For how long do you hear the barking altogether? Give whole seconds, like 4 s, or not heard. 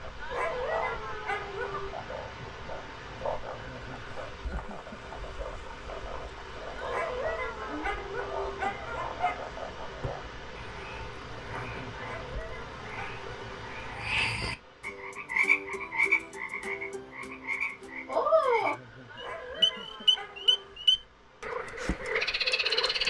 8 s.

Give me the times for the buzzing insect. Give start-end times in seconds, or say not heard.
not heard.